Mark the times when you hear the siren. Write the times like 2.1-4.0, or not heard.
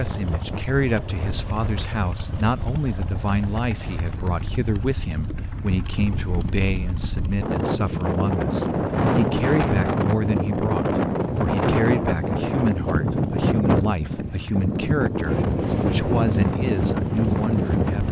not heard.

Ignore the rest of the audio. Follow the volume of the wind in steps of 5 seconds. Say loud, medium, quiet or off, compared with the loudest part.
quiet, loud, loud, loud.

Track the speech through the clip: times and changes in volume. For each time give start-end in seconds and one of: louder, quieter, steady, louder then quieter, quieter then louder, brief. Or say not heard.
0.0-18.0 steady.